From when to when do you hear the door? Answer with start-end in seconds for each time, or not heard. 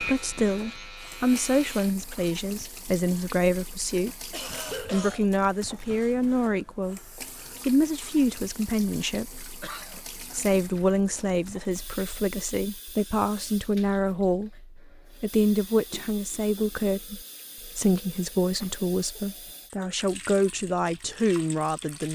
not heard.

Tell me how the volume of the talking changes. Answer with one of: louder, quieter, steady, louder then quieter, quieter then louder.
steady.